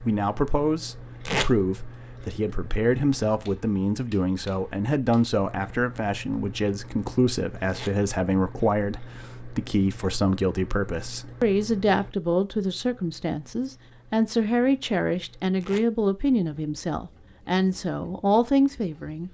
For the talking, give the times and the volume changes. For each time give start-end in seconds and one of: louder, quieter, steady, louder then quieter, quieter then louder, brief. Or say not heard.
0.0-19.2 steady.